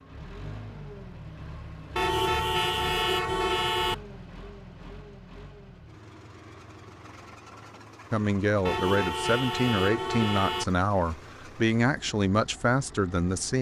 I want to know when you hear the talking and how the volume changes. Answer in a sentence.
You can hear the talking from 8.1 to 13.5 s, at a steady volume.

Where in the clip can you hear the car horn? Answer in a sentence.
You can hear the car horn from 1.9 to 4.0 s and from 8.7 to 10.7 s.